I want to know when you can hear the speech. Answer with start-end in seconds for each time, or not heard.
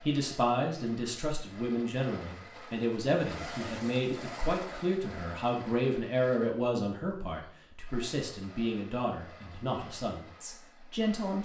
0.0-11.3.